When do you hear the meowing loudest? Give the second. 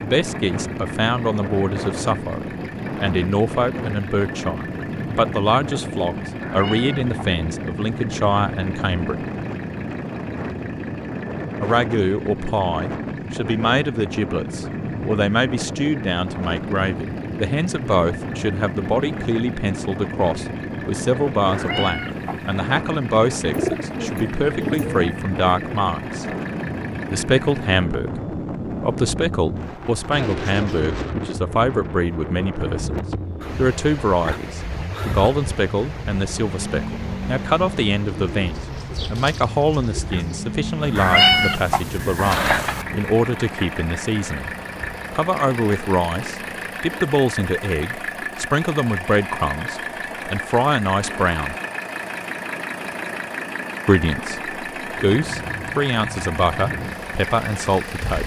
41 s.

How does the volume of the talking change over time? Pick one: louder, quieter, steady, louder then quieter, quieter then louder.
steady.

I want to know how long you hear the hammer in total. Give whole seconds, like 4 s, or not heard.
not heard.